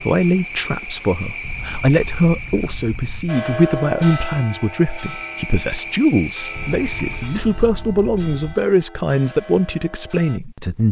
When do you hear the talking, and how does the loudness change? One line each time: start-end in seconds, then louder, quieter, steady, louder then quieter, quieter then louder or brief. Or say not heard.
0.0-10.8 steady.